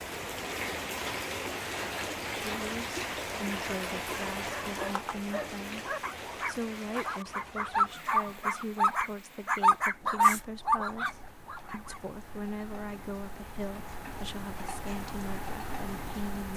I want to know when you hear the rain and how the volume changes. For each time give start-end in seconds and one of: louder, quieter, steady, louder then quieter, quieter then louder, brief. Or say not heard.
0.0-16.5 quieter then louder.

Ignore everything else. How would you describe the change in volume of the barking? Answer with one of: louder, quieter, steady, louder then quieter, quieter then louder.
louder.